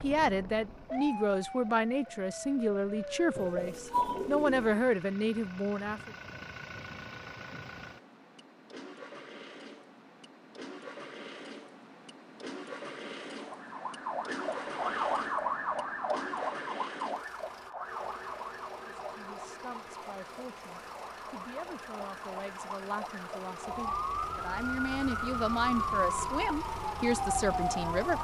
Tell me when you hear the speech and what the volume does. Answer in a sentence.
You can hear the speech from 0.0 to 6.2 s, at a steady volume; and from 18.8 to 28.2 s, getting louder.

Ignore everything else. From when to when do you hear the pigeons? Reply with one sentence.
The pigeons can be heard from 3.4 to 4.8 s.